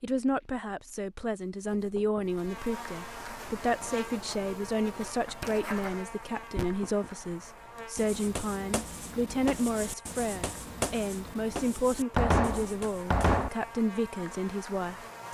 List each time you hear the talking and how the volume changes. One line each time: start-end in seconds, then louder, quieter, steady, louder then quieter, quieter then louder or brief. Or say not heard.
0.0-15.2 steady.